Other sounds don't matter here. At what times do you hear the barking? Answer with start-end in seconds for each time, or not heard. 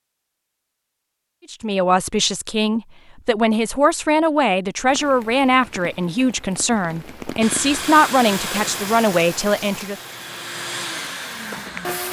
not heard.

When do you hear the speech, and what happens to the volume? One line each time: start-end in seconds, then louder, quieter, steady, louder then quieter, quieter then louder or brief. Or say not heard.
1.5-9.9 steady.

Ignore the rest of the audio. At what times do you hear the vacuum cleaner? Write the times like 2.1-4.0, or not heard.
7.4-12.0.